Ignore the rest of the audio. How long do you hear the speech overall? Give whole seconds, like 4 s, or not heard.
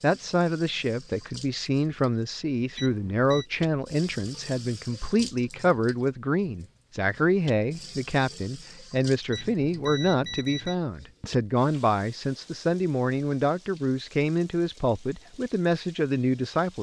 17 s.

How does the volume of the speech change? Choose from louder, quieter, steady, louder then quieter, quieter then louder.
steady.